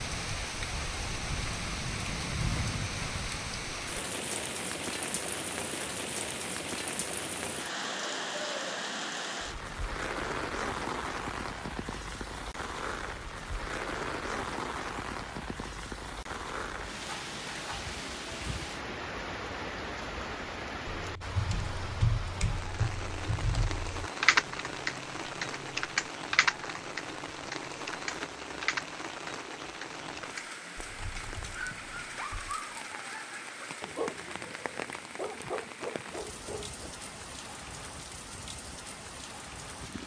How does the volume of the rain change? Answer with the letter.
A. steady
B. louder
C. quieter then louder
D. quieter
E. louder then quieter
D.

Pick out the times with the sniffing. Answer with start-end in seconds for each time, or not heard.
not heard.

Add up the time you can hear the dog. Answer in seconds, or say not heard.
5 s.